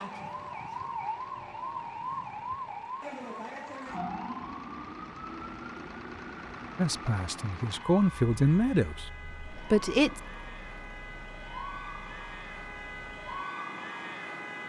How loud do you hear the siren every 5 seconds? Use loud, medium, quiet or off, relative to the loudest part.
loud, medium, loud.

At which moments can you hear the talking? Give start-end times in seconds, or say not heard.
6.8-10.2.